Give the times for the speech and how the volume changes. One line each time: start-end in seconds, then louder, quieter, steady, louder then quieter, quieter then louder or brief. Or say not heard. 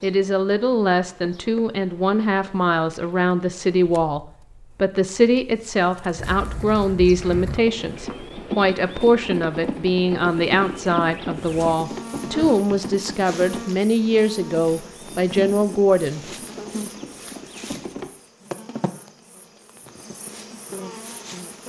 0.0-16.2 steady.